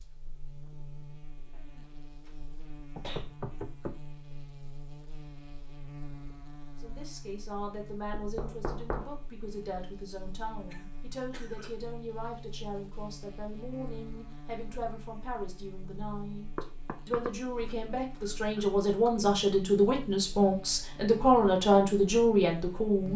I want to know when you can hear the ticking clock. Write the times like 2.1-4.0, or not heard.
not heard.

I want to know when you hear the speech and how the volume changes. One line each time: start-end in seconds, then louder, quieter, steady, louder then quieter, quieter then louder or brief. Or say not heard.
6.8-23.1 louder.